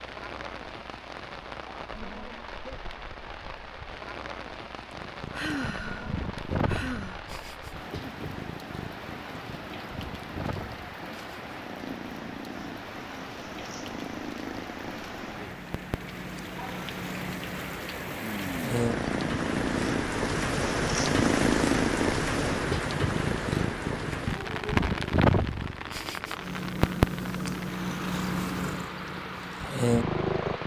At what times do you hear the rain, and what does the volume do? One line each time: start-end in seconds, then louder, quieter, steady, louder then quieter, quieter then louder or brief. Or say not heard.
0.0-30.6 louder then quieter.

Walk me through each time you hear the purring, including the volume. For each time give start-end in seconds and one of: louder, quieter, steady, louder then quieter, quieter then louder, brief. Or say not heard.
4.9-30.6 louder.